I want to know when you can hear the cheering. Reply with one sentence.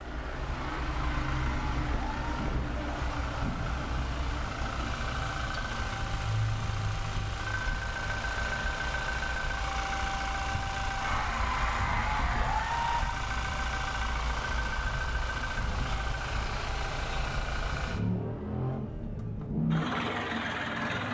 The cheering can be heard from 0.5 to 2.4 s and from 11.0 to 13.0 s.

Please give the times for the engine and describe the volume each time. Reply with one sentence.
You can hear the engine from 0.0 to 21.1 s, at a steady volume.